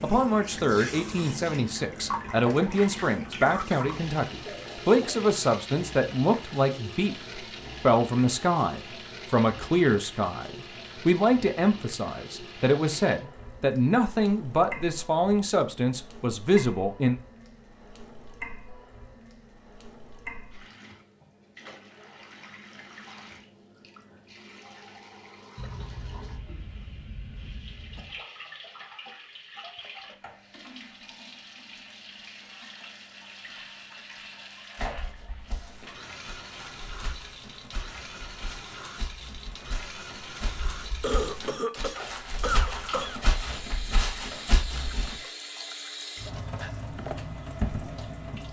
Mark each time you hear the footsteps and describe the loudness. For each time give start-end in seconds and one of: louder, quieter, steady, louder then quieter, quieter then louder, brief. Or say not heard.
34.8-45.2 louder.